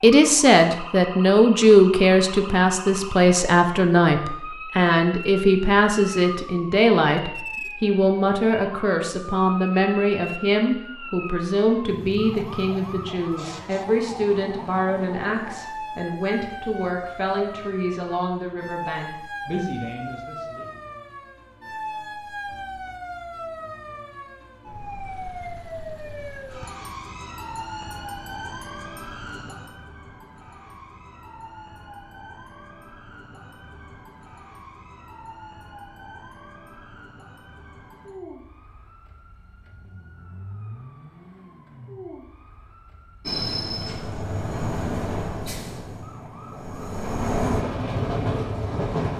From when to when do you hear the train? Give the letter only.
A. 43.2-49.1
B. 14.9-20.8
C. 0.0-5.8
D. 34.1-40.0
A.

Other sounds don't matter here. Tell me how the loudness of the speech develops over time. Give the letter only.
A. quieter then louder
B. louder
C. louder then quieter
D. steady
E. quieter
E.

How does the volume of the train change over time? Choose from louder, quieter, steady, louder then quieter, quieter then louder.
quieter then louder.